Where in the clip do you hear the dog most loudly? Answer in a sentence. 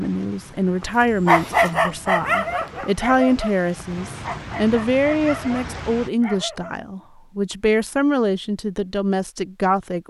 The loudest moment of the dog is at 1 second.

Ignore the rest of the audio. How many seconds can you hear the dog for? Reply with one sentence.
The dog can be heard for 6 seconds in total.